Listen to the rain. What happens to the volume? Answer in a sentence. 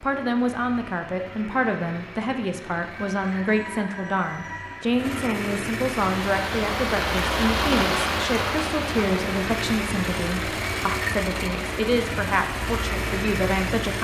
The volume of the rain goes down.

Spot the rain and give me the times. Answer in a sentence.
You can hear the rain from 6.0 to 13.9 s.